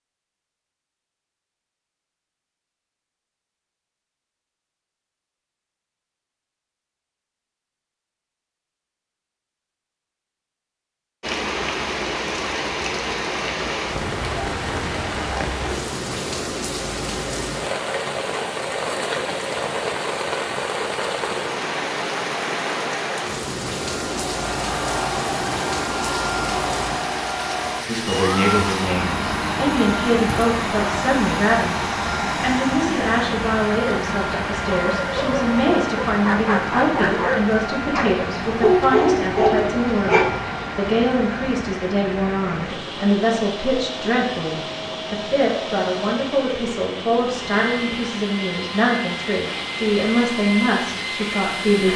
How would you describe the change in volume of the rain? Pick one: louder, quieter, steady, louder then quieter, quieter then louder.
quieter.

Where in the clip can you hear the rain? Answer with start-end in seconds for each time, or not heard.
11.2-51.9.